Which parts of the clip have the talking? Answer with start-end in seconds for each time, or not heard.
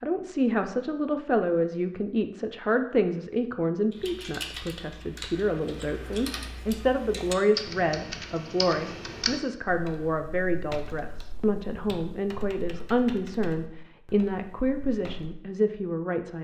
0.0-16.3.